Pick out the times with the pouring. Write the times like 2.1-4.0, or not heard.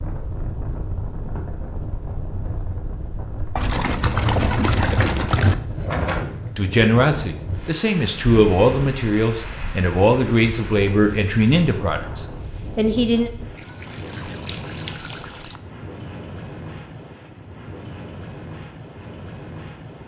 3.5-5.5, 13.6-15.6.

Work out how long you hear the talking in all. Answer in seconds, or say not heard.
7 s.